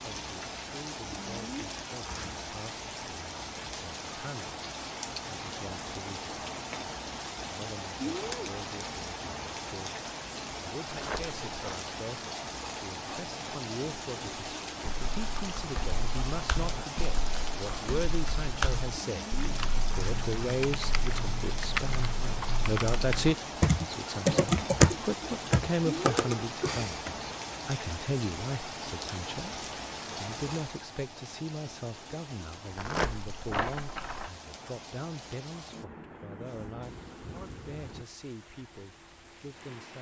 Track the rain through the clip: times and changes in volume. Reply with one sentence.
The rain can be heard from 0.0 to 39.9 s, getting quieter.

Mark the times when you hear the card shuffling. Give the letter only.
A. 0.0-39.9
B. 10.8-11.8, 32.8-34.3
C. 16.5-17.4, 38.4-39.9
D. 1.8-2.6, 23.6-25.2
B.